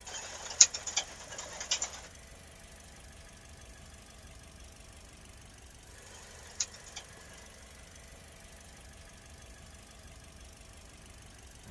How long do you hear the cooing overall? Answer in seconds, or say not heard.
3 s.